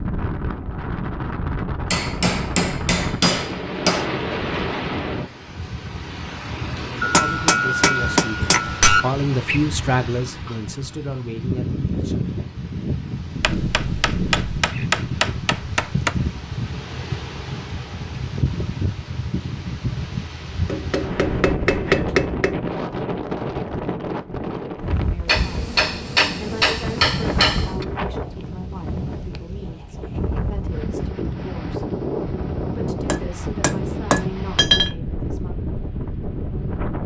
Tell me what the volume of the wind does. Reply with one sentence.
The loudness of the wind stays about the same.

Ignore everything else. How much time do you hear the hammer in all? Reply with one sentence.
You can hear the hammer for 13 seconds altogether.